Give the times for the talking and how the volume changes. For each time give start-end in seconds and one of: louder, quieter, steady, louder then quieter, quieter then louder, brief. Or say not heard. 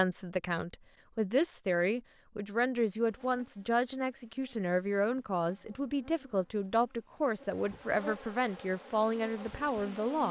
0.0-10.2 steady.